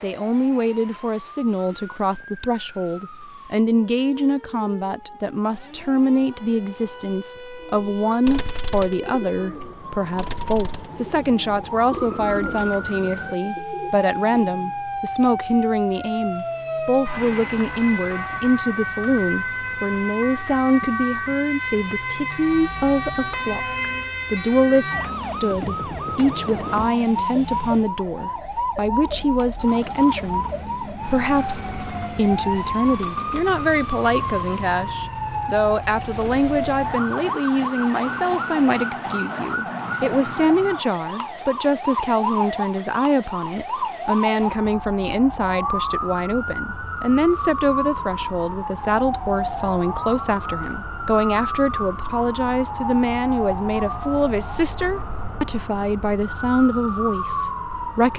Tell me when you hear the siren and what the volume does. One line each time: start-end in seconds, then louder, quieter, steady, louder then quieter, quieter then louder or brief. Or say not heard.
0.0-58.1 louder.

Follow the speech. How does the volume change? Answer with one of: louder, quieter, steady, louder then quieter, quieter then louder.
steady.